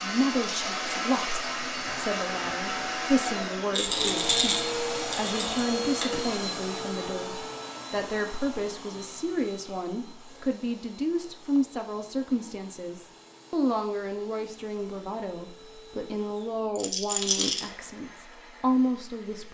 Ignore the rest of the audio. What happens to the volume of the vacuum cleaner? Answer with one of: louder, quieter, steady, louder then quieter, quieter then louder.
quieter.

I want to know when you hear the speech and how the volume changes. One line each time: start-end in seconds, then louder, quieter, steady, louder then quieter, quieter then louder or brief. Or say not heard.
0.0-19.4 steady.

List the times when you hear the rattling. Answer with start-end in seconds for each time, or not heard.
3.7-5.3, 16.8-17.7.